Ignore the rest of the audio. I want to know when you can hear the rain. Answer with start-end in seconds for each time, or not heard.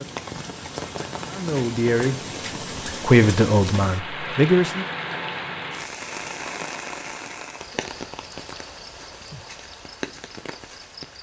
0.0-11.1.